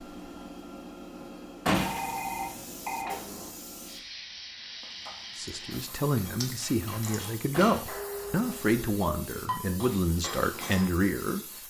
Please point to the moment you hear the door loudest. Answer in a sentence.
The loudest moment of the door is at 2 seconds.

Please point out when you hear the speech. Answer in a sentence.
You can hear the speech from 5.3 to 11.4 s.